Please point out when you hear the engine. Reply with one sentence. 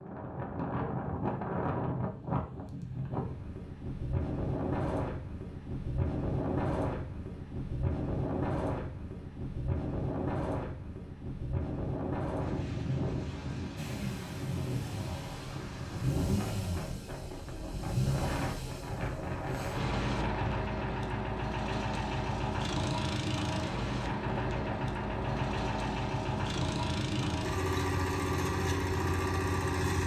The engine can be heard from 13.8 to 30.0 s.